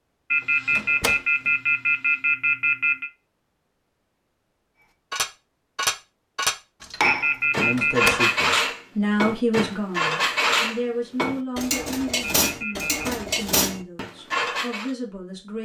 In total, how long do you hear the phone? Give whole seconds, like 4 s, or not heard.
5 s.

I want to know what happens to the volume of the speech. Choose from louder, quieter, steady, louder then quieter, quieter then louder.
quieter.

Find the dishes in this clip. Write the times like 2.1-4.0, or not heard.
5.1-14.9.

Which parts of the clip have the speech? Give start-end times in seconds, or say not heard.
7.6-15.6.